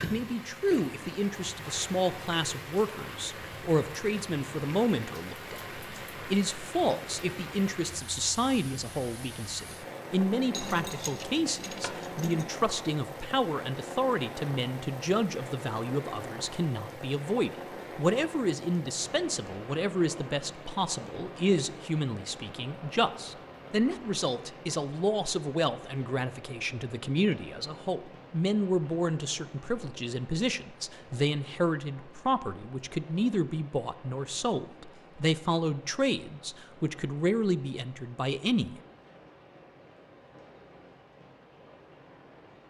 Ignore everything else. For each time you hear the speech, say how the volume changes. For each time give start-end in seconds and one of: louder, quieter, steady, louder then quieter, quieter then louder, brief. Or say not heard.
0.0-38.8 steady.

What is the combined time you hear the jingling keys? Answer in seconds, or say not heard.
2 s.